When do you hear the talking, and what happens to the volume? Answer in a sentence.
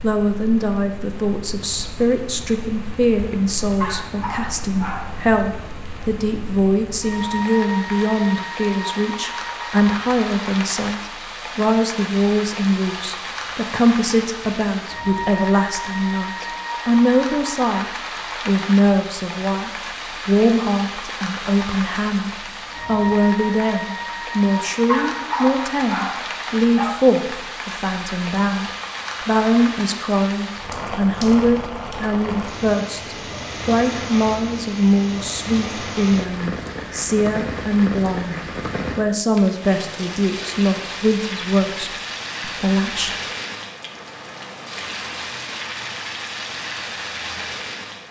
The talking can be heard from 0.0 to 43.1 s, at a steady volume.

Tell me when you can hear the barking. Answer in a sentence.
The barking can be heard from 3.8 to 5.1 s and from 24.9 to 27.0 s.